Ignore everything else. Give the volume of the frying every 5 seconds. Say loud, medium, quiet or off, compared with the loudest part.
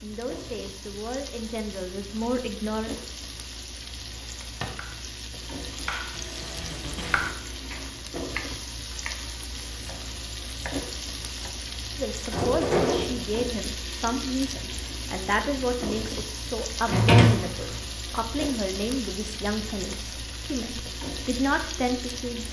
medium, loud, loud, loud, loud.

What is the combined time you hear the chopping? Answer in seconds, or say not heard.
7 s.